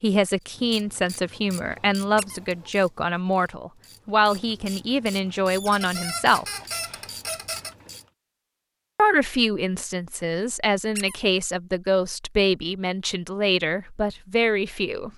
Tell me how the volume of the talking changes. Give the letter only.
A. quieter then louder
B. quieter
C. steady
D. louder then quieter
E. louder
C.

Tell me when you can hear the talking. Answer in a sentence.
You can hear the talking from 0.0 to 6.5 s and from 8.9 to 15.1 s.